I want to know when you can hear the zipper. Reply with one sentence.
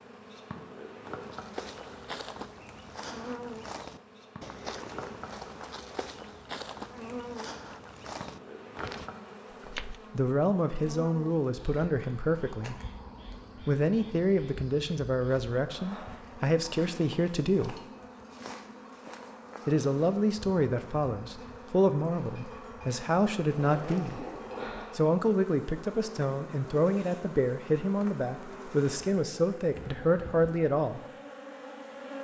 The zipper can be heard from 23.5 to 24.9 s.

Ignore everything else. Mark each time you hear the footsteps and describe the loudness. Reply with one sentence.
The footsteps can be heard from 1.2 to 10.1 s, at a steady volume.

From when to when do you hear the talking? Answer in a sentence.
You can hear the talking from 10.1 to 12.8 s, from 13.6 to 17.8 s, from 19.6 to 24.2 s and from 24.9 to 31.0 s.